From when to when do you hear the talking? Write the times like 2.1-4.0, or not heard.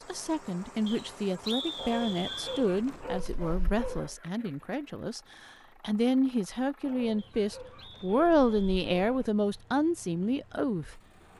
0.1-5.2, 5.8-11.0.